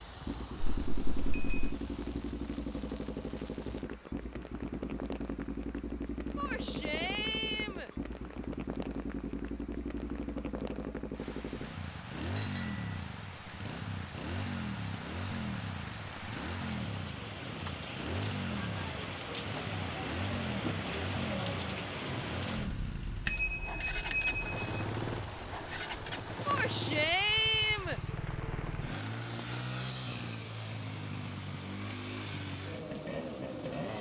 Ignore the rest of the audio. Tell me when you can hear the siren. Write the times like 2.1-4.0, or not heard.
not heard.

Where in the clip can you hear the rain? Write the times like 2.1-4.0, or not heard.
0.0-33.9.